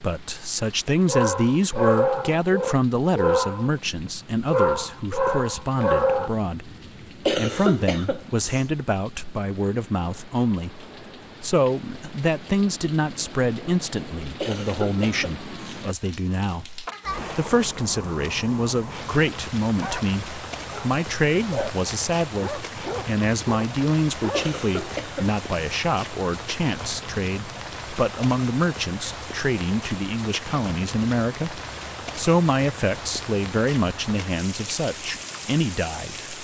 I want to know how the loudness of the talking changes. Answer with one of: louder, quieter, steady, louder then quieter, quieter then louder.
steady.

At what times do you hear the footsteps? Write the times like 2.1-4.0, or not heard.
not heard.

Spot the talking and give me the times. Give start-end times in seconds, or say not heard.
0.0-36.3.